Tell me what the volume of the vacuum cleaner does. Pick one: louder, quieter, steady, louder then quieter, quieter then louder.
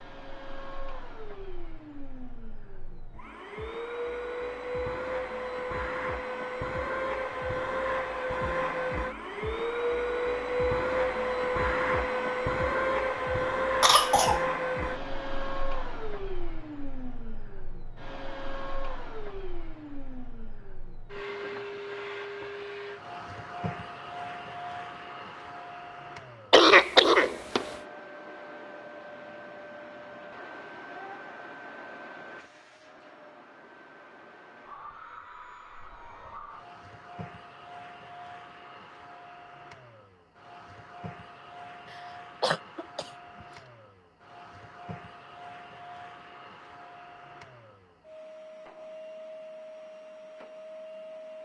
quieter.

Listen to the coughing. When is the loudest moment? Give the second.
27 s.